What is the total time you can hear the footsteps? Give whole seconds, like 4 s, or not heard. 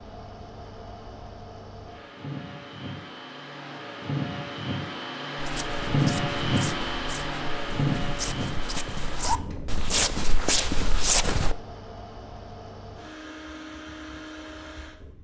6 s.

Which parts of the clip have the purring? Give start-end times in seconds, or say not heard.
not heard.